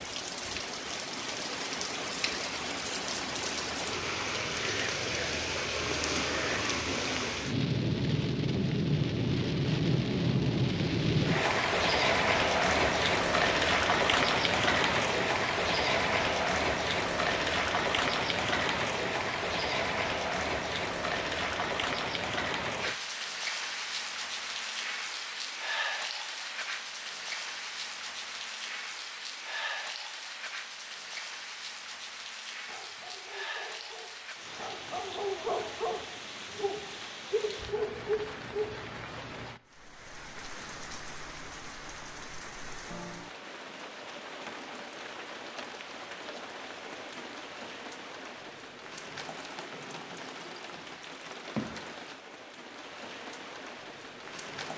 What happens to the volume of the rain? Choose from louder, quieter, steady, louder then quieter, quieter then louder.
quieter.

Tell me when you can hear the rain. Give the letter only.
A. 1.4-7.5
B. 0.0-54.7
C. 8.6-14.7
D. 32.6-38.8
B.